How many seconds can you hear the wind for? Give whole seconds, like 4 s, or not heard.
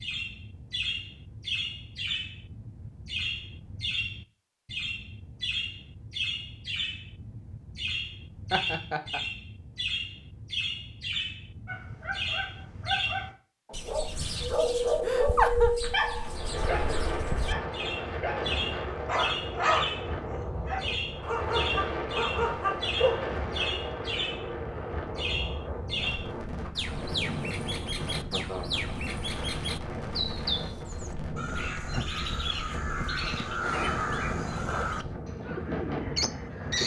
23 s.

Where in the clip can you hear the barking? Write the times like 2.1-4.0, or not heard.
11.7-23.2.